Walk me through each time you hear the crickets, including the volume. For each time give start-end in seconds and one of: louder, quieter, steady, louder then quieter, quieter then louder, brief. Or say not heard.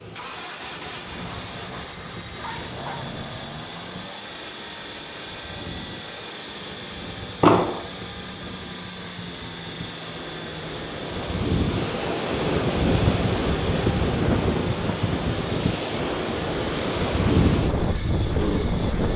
not heard.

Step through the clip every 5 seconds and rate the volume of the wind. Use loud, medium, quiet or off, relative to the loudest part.
quiet, quiet, loud, loud.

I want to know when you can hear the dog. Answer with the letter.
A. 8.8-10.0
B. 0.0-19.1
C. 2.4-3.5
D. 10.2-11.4
C.